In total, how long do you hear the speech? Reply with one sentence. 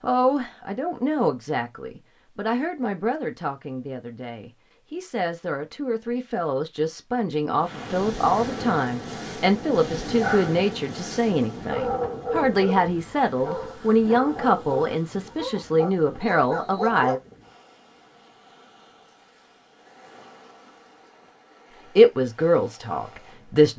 You can hear the speech for 19 seconds altogether.